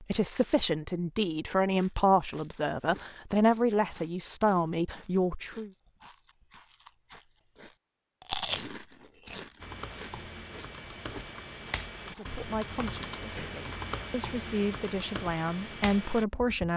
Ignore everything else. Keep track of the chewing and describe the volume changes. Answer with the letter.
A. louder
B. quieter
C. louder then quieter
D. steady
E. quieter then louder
C.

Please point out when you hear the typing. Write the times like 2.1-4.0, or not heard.
9.6-16.7.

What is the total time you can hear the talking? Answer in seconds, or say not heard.
10 s.